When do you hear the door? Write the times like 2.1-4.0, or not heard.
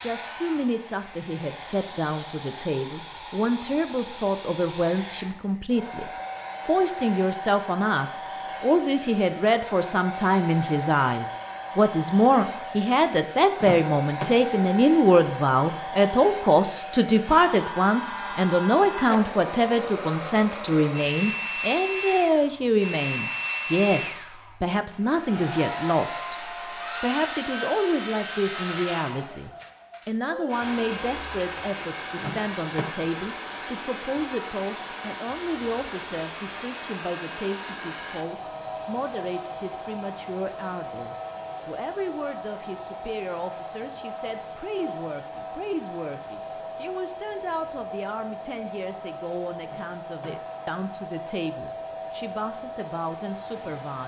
13.6-14.3, 32.1-32.9, 49.6-50.6.